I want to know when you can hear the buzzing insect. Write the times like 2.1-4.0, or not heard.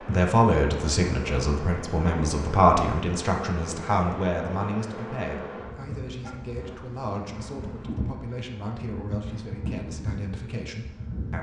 0.0-11.3.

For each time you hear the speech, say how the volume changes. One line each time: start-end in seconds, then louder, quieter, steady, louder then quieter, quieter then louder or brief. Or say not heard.
0.1-11.3 quieter.